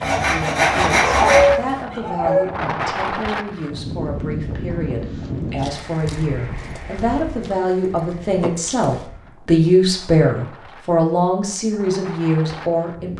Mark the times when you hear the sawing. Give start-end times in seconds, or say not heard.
0.0-1.9.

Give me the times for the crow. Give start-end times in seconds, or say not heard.
not heard.